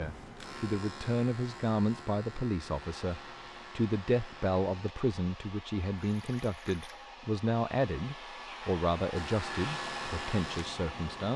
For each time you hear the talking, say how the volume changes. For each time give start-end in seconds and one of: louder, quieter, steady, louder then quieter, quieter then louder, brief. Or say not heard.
0.0-11.3 steady.